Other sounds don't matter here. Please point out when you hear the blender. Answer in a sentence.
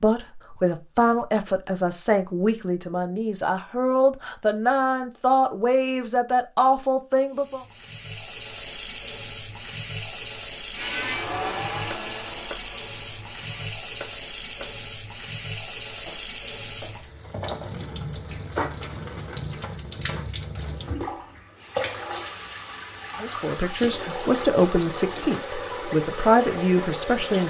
You can hear the blender from 10.7 to 13.8 s.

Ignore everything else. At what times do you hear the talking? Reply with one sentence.
You can hear the talking from 0.0 to 7.6 s and from 23.2 to 27.4 s.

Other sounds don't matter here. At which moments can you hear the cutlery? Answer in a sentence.
You can't hear the cutlery here.